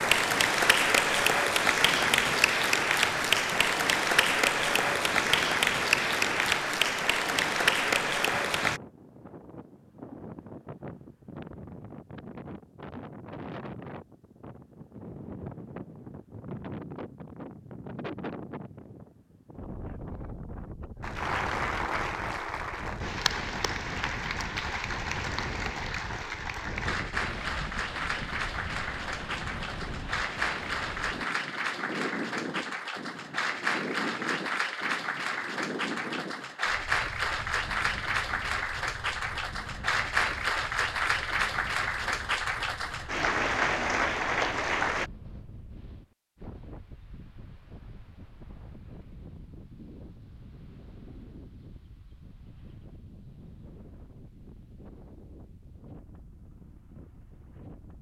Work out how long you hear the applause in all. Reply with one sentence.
You can hear the applause for 33 seconds altogether.